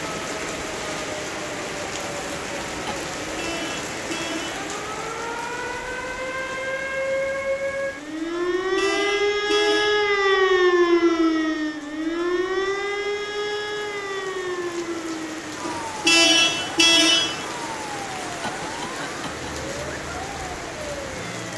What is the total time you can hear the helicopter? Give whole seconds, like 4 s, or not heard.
not heard.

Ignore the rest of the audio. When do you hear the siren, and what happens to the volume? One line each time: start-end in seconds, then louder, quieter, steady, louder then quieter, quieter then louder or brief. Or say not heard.
0.0-21.5 louder then quieter.